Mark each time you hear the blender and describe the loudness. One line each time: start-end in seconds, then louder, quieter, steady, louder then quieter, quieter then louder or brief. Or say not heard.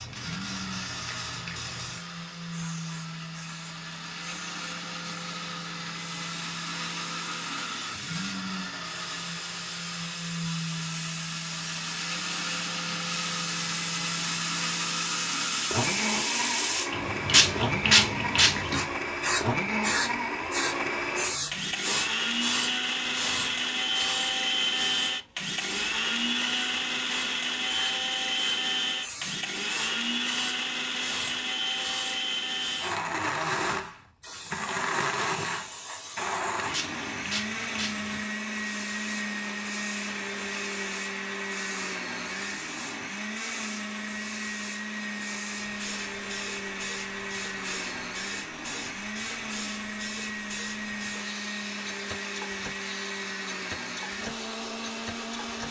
0.0-55.6 louder then quieter.